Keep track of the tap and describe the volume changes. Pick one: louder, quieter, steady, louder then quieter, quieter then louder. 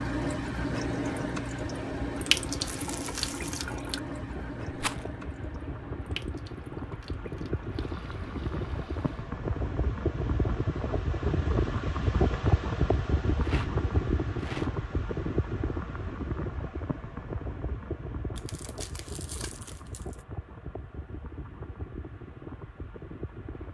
quieter.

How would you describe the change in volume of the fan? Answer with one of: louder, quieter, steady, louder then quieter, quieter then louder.
louder then quieter.